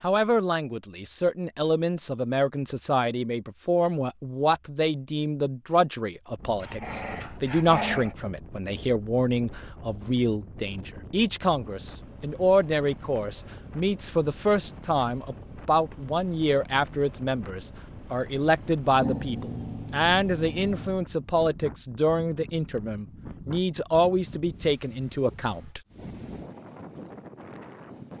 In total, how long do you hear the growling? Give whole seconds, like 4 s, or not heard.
4 s.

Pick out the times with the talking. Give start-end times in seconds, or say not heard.
0.0-25.8.